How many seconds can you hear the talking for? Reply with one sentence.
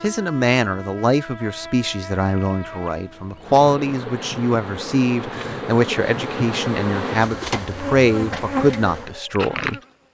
The talking can be heard for 10 seconds in total.